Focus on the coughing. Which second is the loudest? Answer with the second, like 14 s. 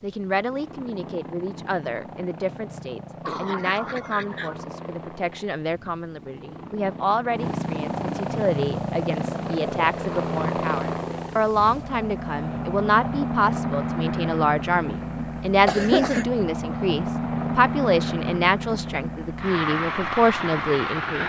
16 s.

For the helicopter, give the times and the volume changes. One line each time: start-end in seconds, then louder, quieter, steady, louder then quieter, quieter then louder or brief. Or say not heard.
0.0-21.2 louder.